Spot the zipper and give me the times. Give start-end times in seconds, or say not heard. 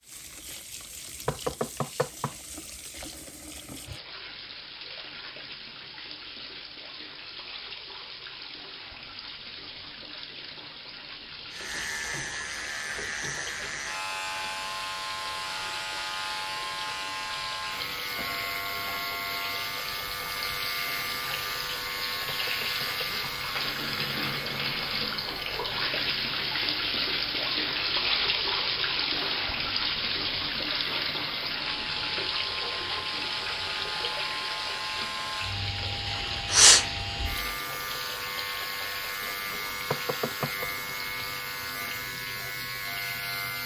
not heard.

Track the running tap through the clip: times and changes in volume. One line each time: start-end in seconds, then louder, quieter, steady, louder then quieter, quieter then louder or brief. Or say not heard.
0.0-43.6 louder then quieter.